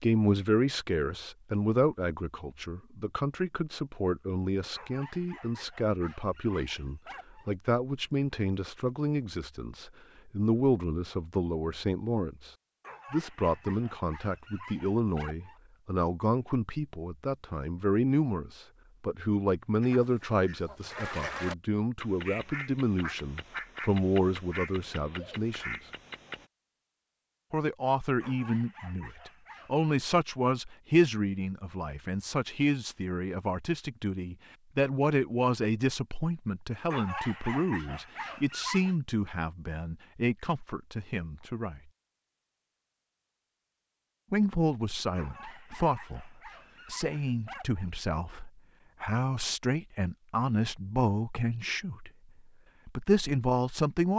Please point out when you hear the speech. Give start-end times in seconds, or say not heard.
0.0-25.8, 27.5-41.8, 44.3-52.1, 52.9-54.1.